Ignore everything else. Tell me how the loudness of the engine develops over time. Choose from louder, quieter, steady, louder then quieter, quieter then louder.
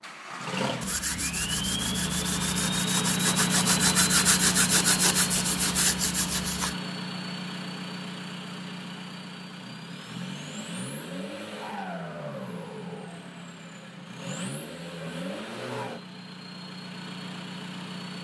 quieter.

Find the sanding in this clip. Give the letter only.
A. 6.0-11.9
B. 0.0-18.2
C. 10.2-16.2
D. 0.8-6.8
D.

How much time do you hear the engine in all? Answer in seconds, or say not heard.
18 s.